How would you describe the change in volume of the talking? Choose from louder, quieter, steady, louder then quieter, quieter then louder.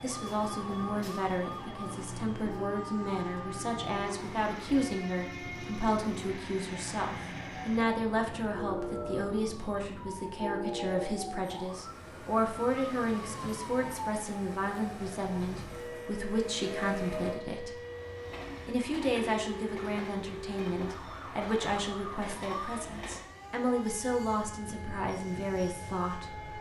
steady.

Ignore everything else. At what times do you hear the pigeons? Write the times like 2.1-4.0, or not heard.
not heard.